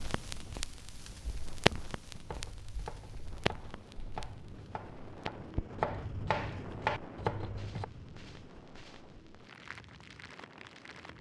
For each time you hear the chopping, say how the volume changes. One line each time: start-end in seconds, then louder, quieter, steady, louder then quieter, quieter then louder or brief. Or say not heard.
2.1-7.8 louder.